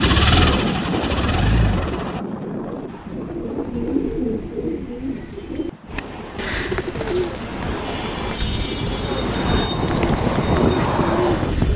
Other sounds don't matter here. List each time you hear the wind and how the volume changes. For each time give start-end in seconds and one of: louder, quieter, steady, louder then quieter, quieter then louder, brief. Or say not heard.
0.0-11.7 quieter then louder.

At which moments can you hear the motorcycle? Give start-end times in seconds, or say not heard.
0.0-2.2.